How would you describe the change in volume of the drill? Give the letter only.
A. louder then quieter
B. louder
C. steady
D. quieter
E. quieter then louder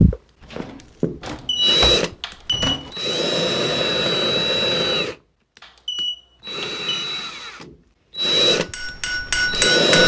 E.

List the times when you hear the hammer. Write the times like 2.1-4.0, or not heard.
8.5-10.0.